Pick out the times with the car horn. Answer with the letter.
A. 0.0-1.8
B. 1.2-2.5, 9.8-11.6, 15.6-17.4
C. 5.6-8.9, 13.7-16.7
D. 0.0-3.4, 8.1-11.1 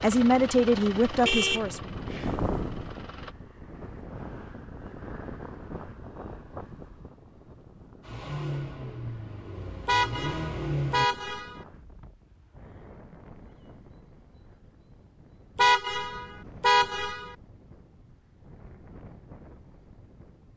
B.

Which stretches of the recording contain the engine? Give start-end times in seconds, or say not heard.
0.0-3.4, 8.1-11.1.